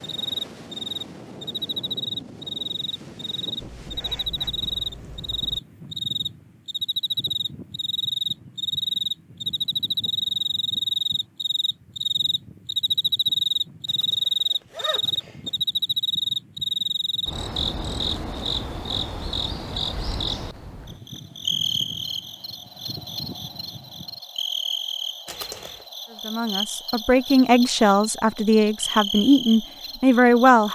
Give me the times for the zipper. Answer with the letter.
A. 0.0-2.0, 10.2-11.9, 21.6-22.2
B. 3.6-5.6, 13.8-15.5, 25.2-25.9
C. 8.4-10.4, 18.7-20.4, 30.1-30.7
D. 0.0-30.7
B.